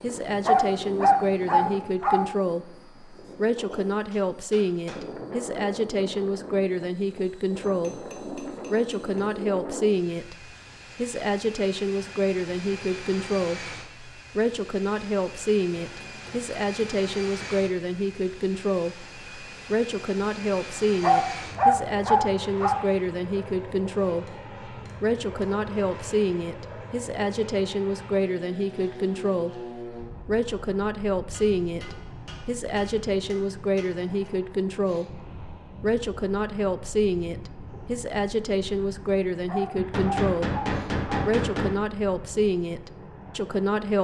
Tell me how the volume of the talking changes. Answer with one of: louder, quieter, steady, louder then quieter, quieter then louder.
steady.